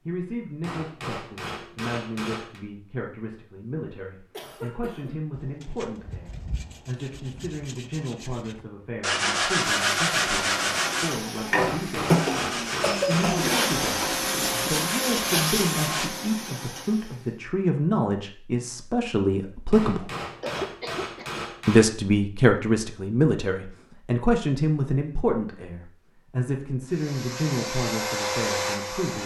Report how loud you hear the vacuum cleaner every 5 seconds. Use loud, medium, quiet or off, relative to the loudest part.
off, off, loud, loud, off, loud.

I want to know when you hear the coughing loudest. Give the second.
13 s.